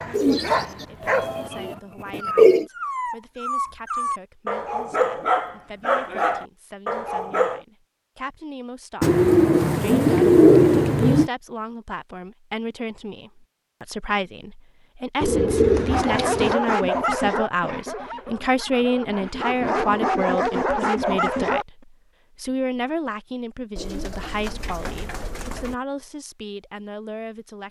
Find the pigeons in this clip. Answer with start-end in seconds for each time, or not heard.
0.1-2.6, 9.0-11.3, 15.2-16.6, 23.8-25.8.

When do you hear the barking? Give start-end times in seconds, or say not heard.
0.0-7.6, 15.9-21.6.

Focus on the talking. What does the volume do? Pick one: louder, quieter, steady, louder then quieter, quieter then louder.
louder then quieter.